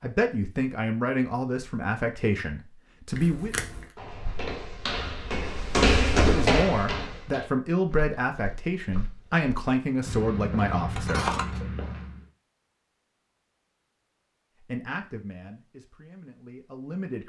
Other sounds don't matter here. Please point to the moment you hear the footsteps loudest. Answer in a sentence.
The volume of the footsteps peaks at 6 seconds.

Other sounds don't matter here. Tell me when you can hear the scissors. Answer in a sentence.
You can hear the scissors from 3.1 to 3.9 s and from 10.9 to 11.6 s.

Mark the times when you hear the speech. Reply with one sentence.
The speech can be heard from 0.0 to 3.5 s, from 6.2 to 11.3 s and from 14.6 to 17.2 s.